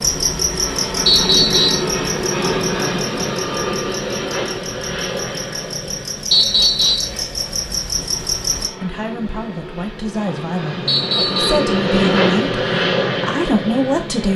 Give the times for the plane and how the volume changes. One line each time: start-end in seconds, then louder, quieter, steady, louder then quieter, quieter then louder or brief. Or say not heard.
0.0-14.3 quieter then louder.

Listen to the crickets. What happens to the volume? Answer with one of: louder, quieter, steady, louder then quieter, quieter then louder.
quieter then louder.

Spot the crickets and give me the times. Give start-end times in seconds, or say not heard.
0.0-8.7.